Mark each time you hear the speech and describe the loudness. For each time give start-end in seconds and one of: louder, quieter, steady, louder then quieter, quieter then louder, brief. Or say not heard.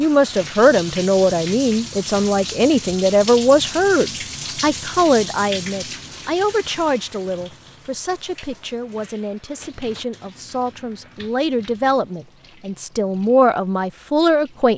0.0-14.7 quieter then louder.